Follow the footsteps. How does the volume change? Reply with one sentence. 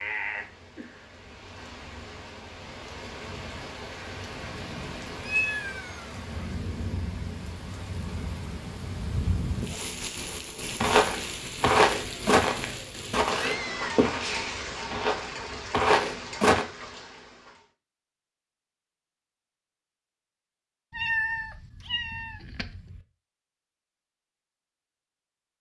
The volume of the footsteps goes down, then up.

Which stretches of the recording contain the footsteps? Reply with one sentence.
The footsteps can be heard from 10.8 to 16.6 s.